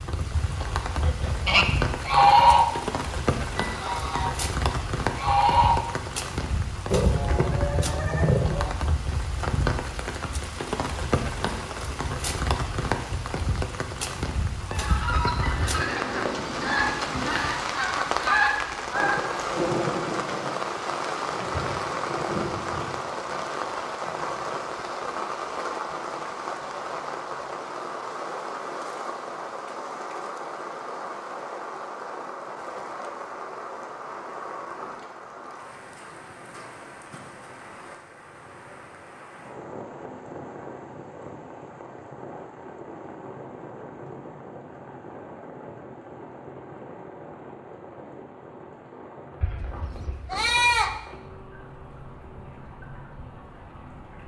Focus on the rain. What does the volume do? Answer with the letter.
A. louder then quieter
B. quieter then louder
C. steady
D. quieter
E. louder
D.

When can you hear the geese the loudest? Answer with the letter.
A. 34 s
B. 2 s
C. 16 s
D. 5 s
B.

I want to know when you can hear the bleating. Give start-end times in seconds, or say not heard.
6.9-8.7, 49.4-51.0.